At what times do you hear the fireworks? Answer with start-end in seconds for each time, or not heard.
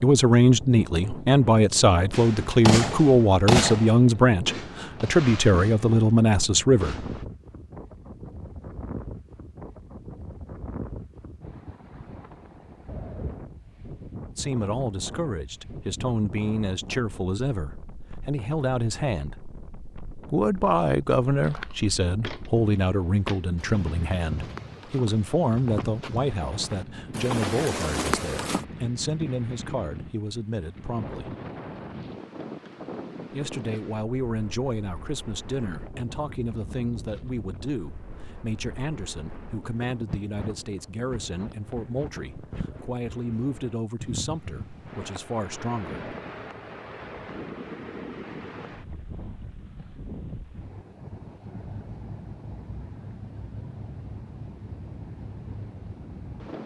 2.1-7.2.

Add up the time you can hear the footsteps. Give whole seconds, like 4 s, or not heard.
7 s.